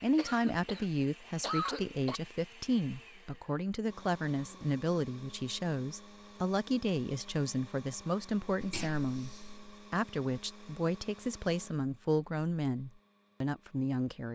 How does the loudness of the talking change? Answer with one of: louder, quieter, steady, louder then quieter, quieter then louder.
steady.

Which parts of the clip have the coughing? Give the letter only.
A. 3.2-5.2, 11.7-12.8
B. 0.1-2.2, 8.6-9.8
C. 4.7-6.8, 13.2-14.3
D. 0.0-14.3
B.